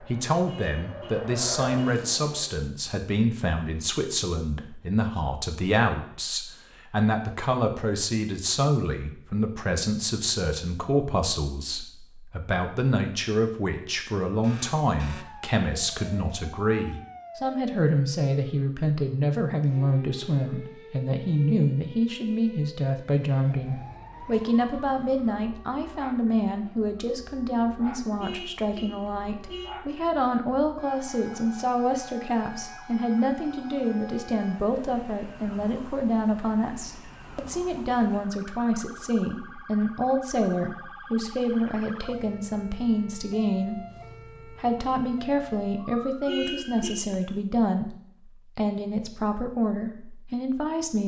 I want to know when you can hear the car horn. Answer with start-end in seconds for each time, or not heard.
0.5-2.0, 28.2-29.8, 46.2-47.2.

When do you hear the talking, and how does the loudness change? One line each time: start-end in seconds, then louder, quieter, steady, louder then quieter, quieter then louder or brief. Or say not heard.
0.0-51.0 steady.